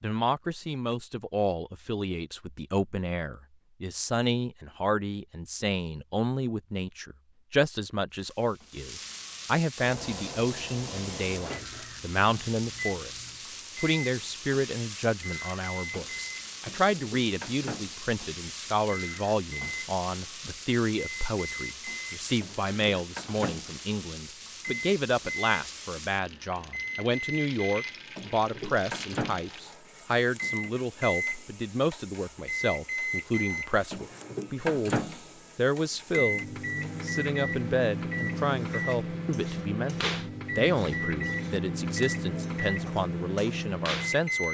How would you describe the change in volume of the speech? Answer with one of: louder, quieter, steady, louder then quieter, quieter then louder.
steady.